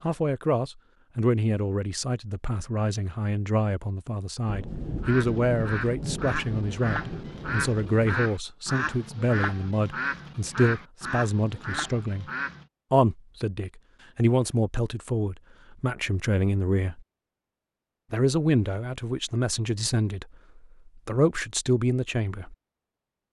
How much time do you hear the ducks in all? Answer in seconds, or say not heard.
8 s.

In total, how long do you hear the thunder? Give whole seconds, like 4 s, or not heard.
4 s.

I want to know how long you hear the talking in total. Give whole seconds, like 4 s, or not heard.
21 s.